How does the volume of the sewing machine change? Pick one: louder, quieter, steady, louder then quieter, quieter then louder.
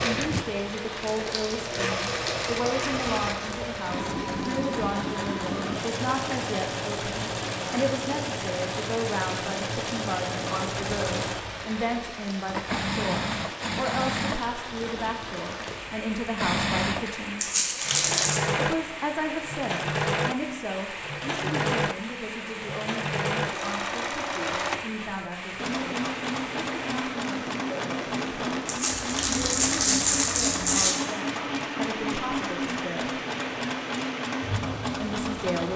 steady.